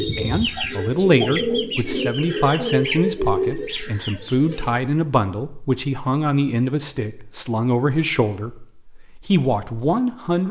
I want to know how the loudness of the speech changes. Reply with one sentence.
The volume of the speech stays about the same.